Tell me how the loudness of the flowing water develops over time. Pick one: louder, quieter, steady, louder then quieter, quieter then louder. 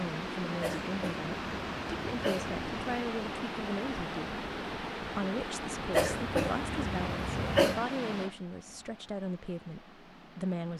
quieter.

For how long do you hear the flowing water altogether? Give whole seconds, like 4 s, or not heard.
11 s.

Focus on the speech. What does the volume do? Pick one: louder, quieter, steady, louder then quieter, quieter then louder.
steady.